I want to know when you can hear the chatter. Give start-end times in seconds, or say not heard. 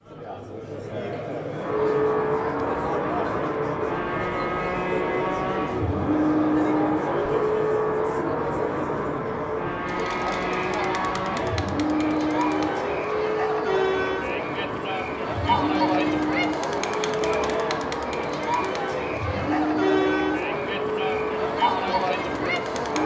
0.0-23.0.